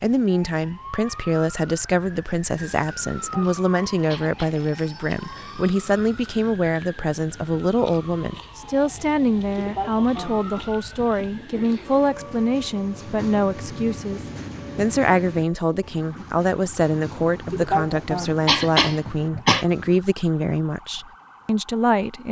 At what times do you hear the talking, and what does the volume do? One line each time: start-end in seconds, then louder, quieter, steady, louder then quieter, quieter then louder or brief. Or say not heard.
0.0-22.2 steady.